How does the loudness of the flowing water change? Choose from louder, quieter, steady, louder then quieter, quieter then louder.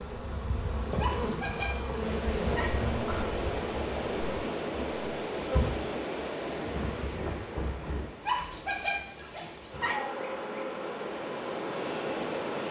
quieter then louder.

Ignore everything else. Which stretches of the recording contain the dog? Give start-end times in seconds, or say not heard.
0.9-2.7, 8.2-10.0.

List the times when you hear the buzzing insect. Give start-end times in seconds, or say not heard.
0.0-12.6.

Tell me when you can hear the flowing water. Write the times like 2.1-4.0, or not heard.
1.9-12.6.